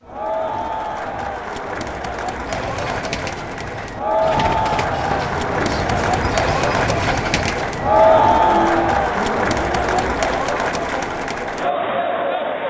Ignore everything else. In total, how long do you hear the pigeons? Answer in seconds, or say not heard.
8 s.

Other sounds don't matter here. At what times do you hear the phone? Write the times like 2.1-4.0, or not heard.
not heard.